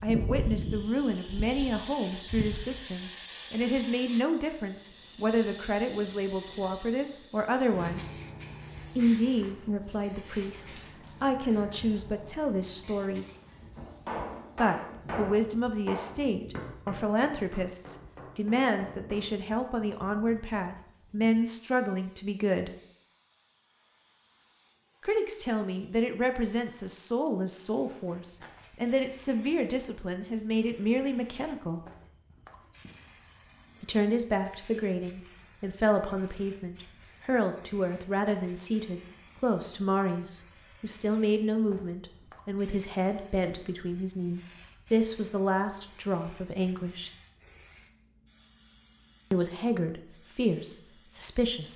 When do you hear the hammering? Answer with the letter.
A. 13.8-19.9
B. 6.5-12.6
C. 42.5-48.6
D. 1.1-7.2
A.